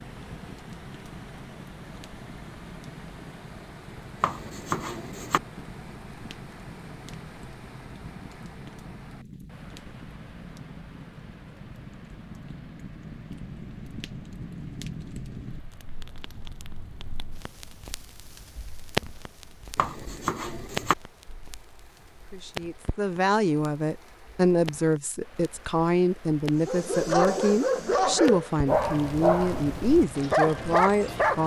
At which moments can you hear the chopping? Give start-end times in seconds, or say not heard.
4.2-5.4, 19.8-20.9.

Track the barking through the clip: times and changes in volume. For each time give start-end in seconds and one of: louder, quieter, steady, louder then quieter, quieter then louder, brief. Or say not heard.
26.6-31.4 quieter then louder.